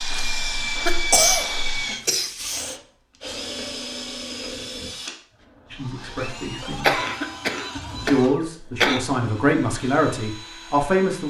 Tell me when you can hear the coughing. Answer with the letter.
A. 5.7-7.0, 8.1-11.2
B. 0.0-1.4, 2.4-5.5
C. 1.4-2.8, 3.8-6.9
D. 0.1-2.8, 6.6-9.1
D.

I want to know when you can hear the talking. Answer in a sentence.
You can hear the talking from 5.7 to 7.0 s and from 8.1 to 11.2 s.